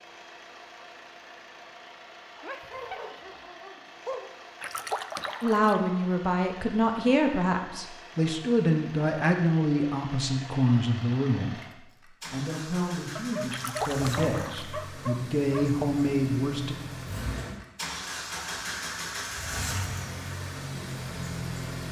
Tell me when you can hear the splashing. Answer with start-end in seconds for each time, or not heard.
4.6-5.8, 13.5-14.7.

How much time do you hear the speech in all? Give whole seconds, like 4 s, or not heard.
11 s.